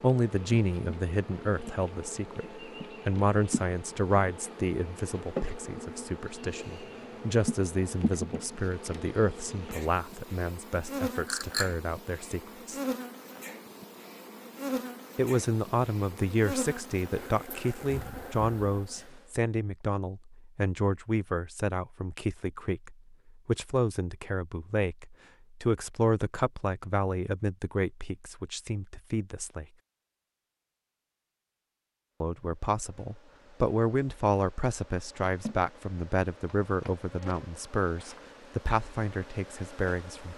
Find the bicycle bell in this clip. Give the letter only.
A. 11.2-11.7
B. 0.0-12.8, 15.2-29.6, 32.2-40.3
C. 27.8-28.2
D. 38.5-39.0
A.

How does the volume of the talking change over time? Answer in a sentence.
The volume of the talking stays about the same.